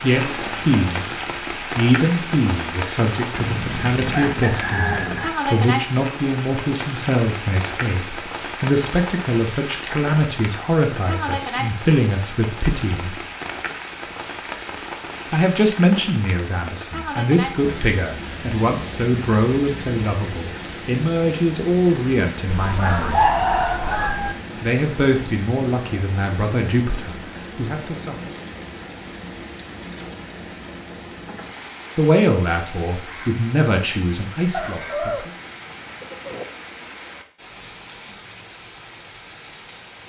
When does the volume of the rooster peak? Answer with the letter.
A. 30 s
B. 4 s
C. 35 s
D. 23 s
D.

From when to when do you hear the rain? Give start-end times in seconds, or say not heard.
0.0-40.0.